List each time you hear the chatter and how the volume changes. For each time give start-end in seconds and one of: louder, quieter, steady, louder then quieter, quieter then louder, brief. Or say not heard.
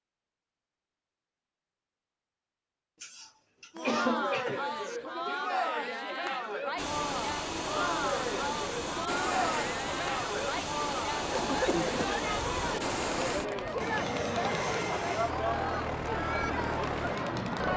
3.8-17.7 steady.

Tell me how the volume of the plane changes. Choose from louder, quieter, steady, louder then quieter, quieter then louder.
steady.